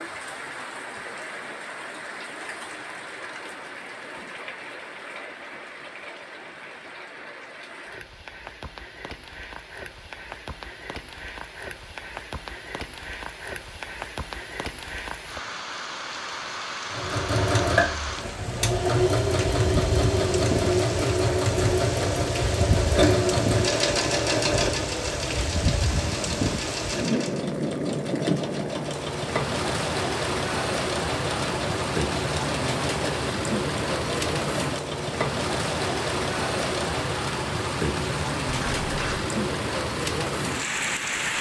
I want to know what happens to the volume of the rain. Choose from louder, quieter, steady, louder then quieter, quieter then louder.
louder.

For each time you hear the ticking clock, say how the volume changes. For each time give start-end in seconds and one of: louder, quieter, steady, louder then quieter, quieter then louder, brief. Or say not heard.
not heard.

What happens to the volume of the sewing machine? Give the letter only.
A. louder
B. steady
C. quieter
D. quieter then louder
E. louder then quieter
C.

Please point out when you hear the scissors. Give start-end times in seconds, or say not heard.
38.5-39.3.